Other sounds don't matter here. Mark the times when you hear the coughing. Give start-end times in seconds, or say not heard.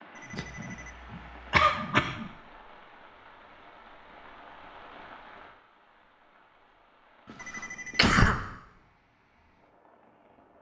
0.3-2.3, 7.5-8.4.